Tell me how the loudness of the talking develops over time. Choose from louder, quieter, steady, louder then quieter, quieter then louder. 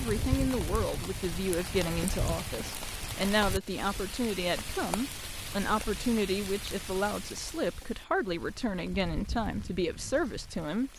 steady.